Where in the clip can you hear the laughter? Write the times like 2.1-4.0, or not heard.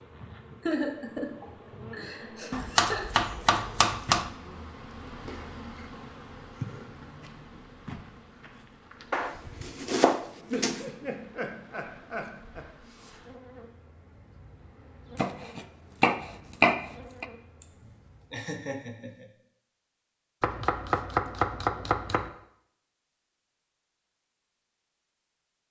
0.6-3.1, 10.5-13.2, 17.6-19.2.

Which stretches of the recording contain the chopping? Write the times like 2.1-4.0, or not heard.
2.5-4.3, 9.1-10.8, 15.2-17.2, 20.4-22.3.